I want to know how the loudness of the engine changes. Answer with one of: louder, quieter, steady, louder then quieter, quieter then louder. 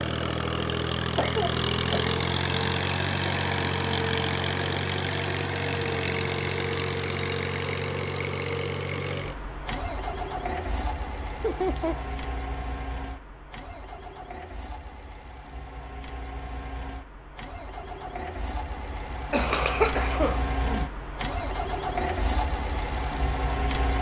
quieter then louder.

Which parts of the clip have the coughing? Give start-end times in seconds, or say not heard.
1.1-2.1, 11.4-12.0, 19.3-20.9.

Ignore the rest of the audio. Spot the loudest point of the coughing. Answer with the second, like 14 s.
20 s.